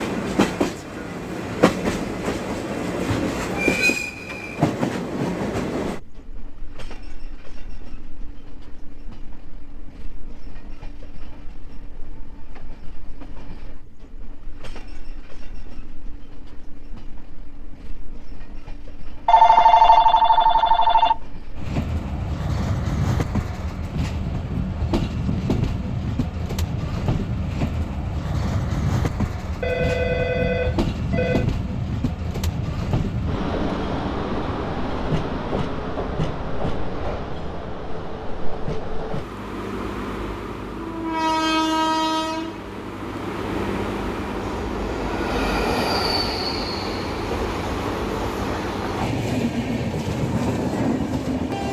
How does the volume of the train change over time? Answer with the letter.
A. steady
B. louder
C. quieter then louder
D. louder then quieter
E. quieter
C.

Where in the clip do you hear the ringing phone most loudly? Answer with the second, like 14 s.
20 s.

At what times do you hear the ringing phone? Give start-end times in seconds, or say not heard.
19.2-21.1, 29.6-31.4.